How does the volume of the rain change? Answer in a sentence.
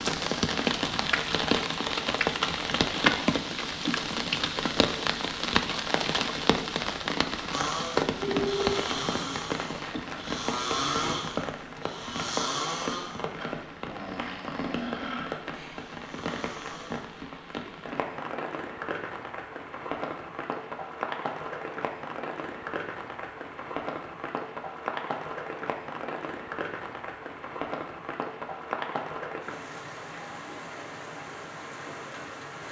The volume of the rain goes down.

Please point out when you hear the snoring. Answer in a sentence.
The snoring can be heard from 7.5 to 17.1 s.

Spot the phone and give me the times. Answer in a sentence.
The phone can be heard from 8.2 to 8.8 s.